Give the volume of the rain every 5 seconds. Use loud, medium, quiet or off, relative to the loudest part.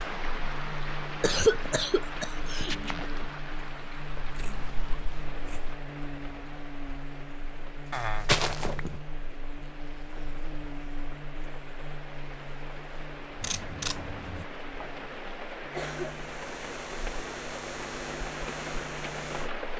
loud, medium, medium, loud.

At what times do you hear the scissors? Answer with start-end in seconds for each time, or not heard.
4.2-5.8, 13.4-14.4.